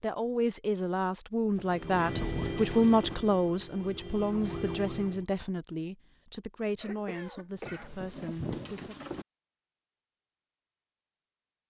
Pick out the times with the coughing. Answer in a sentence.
You can hear the coughing from 6.8 to 8.0 s.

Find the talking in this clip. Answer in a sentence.
You can hear the talking from 0.0 to 8.9 s.